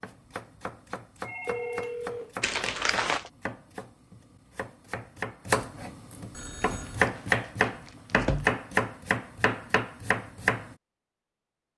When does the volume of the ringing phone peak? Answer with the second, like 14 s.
2 s.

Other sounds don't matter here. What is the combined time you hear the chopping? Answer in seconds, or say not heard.
11 s.